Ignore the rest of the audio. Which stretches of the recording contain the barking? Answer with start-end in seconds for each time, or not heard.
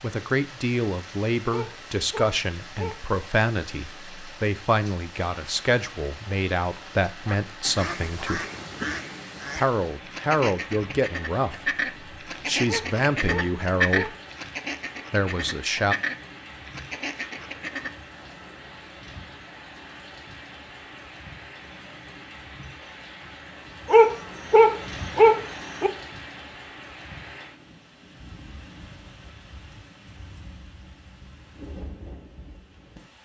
1.5-3.0, 12.7-14.2, 23.9-25.9.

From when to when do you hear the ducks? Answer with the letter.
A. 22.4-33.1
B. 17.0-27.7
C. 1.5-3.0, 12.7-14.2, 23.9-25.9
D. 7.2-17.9
D.